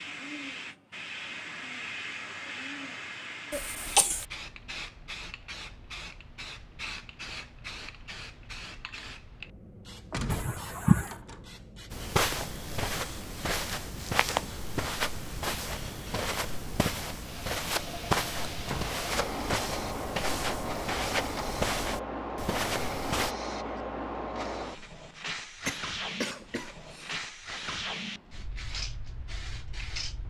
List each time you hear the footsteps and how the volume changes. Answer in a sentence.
You can hear the footsteps from 11.9 to 23.4 s, at a steady volume.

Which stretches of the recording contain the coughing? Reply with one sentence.
You can hear the coughing from 3.5 to 4.2 s, from 10.3 to 11.1 s and from 25.6 to 27.2 s.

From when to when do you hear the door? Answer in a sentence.
You can hear the door from 10.1 to 11.4 s and from 18.4 to 19.0 s.